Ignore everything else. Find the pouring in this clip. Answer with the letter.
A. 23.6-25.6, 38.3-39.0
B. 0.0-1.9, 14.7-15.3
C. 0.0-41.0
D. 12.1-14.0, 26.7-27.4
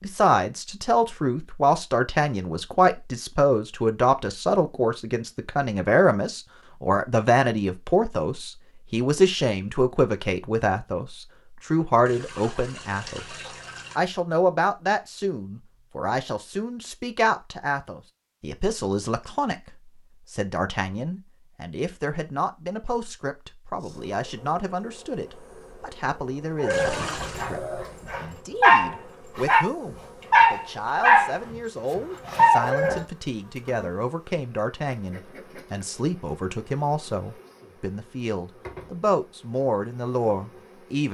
D.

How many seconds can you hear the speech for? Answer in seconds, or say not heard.
41 s.